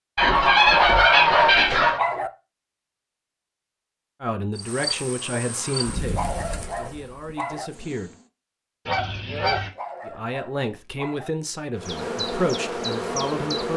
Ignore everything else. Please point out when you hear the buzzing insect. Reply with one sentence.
The buzzing insect can be heard from 4.5 to 8.3 s and from 11.8 to 13.7 s.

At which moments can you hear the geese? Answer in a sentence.
You can hear the geese from 0.1 to 2.0 s and from 8.8 to 9.7 s.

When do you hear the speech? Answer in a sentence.
You can hear the speech from 4.2 to 8.2 s and from 10.1 to 13.7 s.